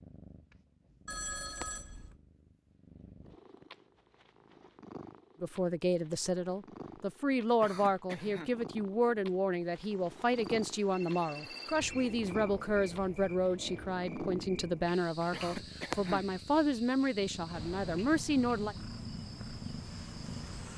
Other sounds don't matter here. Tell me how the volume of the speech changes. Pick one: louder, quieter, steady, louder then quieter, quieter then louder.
steady.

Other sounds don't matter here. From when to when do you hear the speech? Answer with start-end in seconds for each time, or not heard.
5.4-18.8.